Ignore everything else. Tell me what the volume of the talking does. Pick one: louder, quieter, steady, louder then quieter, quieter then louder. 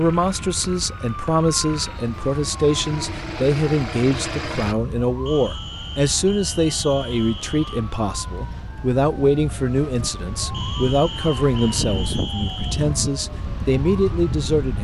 steady.